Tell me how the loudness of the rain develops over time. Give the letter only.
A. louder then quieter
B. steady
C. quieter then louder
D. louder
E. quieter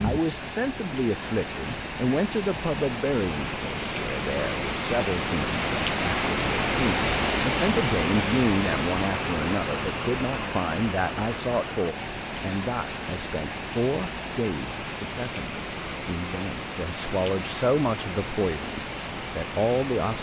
A.